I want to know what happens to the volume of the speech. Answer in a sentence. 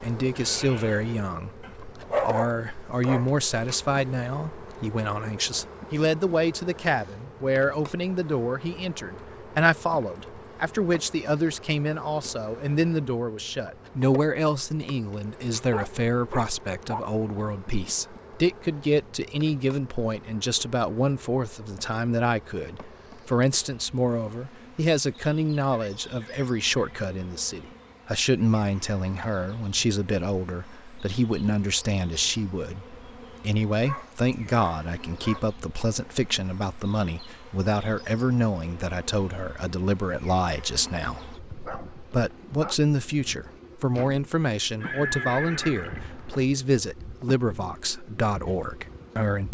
The loudness of the speech stays about the same.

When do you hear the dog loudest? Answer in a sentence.
The volume of the dog peaks at 2 seconds.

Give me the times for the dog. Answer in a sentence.
You can hear the dog from 1.6 to 3.3 s, from 15.7 to 17.1 s, from 33.8 to 35.4 s and from 41.1 to 42.8 s.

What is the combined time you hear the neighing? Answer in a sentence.
The neighing can be heard for 4 seconds in total.